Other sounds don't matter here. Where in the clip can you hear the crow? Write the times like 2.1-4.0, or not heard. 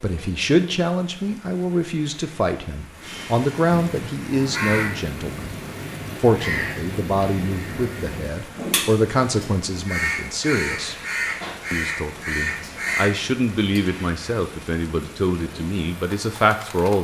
3.7-13.8.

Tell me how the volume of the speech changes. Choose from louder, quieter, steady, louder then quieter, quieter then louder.
steady.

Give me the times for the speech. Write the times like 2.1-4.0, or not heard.
0.0-5.5, 6.2-10.9, 11.7-16.9.